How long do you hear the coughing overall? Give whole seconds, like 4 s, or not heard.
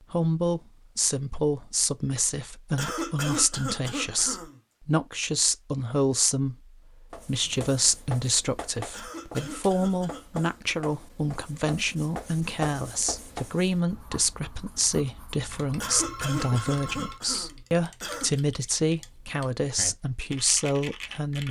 6 s.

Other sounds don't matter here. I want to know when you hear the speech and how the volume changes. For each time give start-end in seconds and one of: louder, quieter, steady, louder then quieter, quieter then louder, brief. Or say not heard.
0.1-21.4 steady.